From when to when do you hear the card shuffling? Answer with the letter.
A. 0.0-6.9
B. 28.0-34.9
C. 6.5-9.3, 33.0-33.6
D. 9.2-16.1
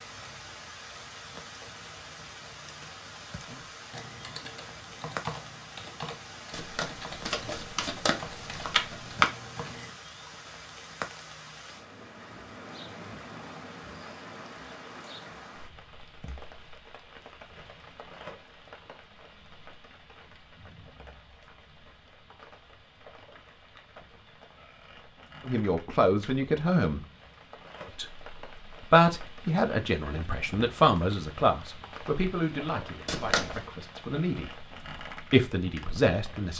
C.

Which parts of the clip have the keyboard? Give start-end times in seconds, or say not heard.
3.4-10.3.